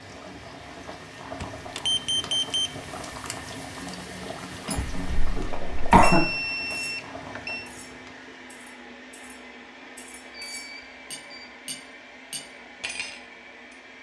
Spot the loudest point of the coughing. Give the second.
6 s.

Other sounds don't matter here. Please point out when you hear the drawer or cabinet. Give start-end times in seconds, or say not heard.
not heard.